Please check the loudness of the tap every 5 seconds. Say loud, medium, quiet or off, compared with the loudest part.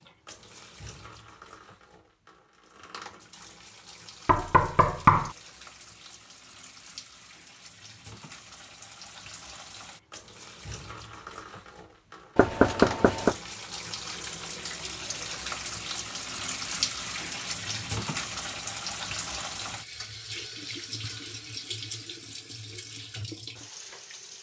quiet, quiet, medium, loud, medium.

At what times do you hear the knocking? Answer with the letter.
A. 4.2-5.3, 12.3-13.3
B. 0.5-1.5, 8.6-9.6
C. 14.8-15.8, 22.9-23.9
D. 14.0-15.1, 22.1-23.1
A.